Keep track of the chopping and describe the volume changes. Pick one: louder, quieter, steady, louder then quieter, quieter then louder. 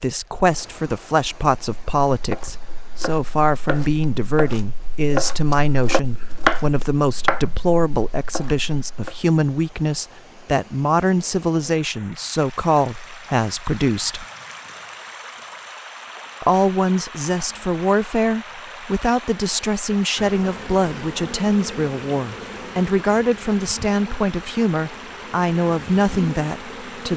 louder then quieter.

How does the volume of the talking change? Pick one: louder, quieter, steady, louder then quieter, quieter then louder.
steady.